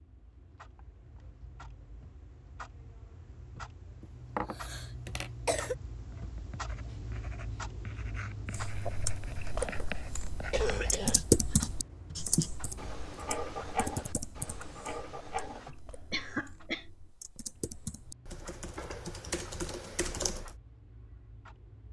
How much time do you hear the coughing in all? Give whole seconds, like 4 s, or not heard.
4 s.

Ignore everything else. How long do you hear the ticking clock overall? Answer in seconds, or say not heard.
22 s.